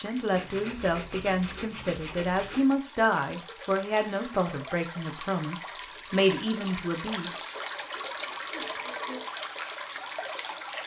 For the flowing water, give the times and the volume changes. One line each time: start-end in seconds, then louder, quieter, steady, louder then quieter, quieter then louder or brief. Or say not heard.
0.0-10.8 louder.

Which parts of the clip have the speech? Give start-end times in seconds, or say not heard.
0.0-7.5.